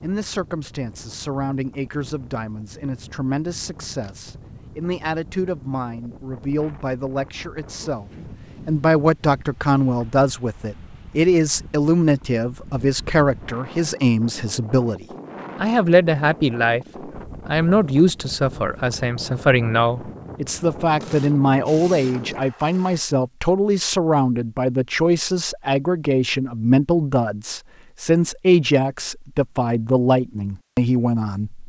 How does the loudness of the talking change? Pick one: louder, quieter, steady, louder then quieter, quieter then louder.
louder.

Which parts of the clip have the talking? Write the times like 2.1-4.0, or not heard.
0.0-31.6.